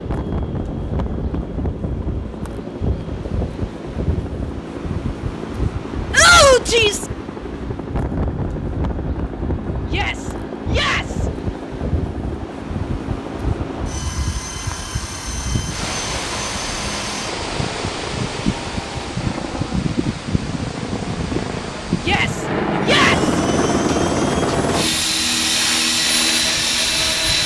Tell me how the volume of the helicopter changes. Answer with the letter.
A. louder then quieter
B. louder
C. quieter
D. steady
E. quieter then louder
B.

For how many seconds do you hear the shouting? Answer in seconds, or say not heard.
4 s.